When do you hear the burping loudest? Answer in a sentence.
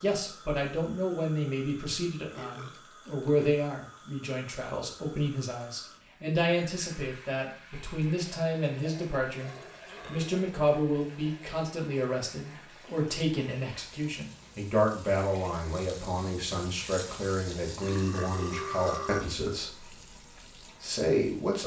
The loudest moment of the burping is at 19 seconds.